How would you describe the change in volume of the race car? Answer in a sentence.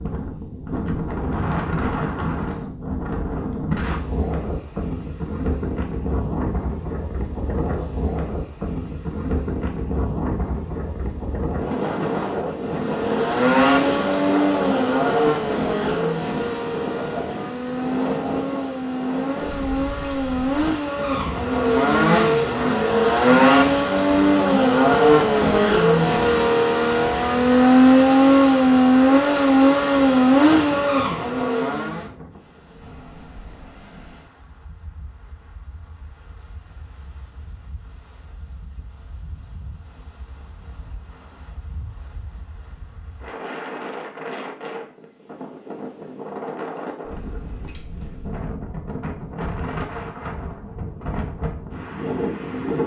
The loudness of the race car goes down, then up.